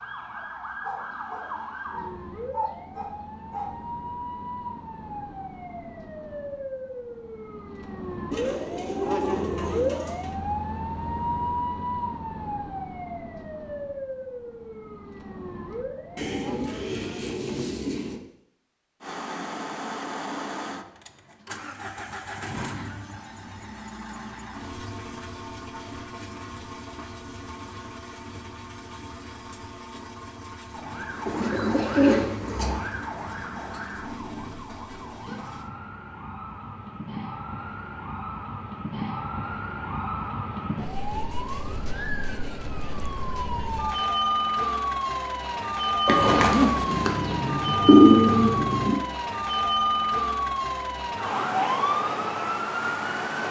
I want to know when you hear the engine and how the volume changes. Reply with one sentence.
The engine can be heard from 19.0 to 35.7 s, getting quieter.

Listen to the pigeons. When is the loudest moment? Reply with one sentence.
The volume of the pigeons peaks at 48 seconds.